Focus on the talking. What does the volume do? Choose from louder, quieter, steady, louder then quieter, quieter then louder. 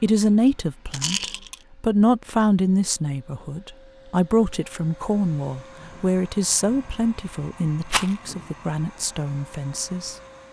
quieter.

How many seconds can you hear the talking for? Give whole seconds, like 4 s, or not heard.
10 s.